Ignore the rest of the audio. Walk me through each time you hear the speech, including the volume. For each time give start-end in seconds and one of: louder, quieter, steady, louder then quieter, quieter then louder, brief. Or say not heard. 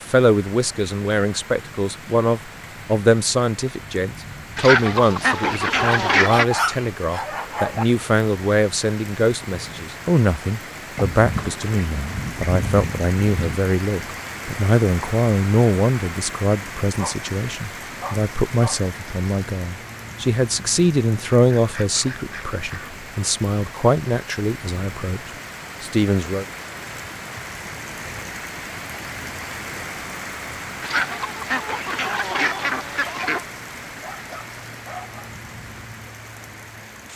0.0-26.4 steady.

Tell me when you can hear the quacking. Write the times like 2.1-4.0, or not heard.
4.5-6.5, 10.9-13.6, 21.6-23.3, 30.8-33.5.